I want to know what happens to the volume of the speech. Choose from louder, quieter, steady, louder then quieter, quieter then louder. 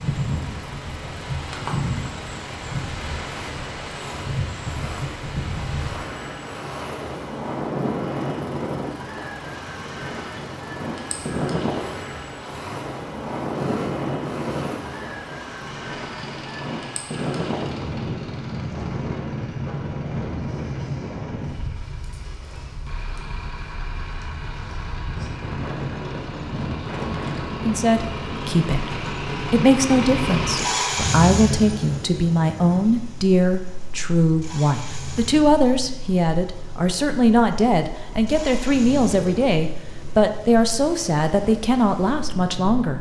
steady.